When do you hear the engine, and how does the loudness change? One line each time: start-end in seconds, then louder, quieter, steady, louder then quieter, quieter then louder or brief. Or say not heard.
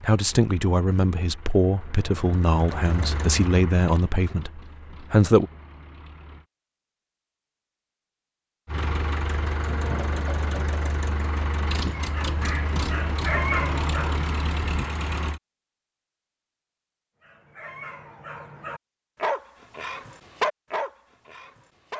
0.0-6.5 louder then quieter
8.7-15.4 steady.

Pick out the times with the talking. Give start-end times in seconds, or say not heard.
0.0-5.5.